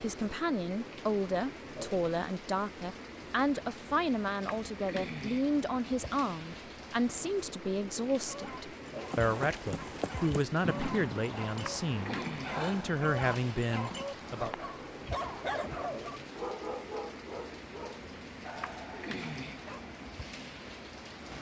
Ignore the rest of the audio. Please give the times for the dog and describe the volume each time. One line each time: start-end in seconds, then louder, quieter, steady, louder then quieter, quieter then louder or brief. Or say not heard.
8.2-19.9 louder then quieter.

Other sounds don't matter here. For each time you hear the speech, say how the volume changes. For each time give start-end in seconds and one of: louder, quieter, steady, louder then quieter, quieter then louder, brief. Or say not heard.
0.0-14.5 steady.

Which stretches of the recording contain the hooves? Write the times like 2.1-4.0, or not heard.
9.1-15.9.